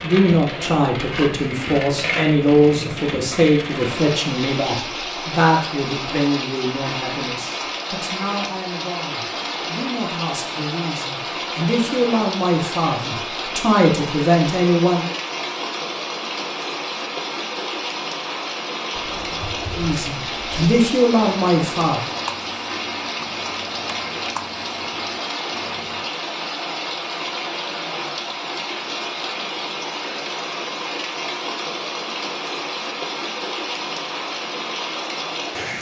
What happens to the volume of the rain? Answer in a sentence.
The loudness of the rain stays about the same.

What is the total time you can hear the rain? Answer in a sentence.
You can hear the rain for 36 seconds altogether.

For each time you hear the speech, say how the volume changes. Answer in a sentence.
You can hear the speech from 0.0 to 15.1 s, getting quieter then louder; and briefly from 19.8 to 22.0 s.